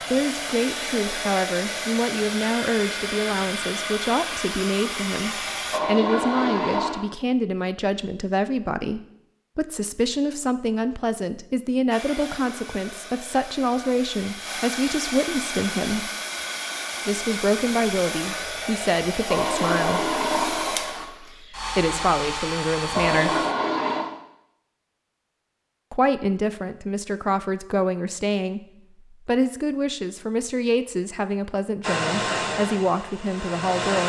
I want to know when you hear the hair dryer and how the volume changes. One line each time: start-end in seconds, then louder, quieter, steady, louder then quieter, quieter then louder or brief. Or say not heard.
0.0-5.8 steady
11.9-23.6 louder
31.8-34.0 brief.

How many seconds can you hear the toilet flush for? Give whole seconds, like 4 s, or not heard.
4 s.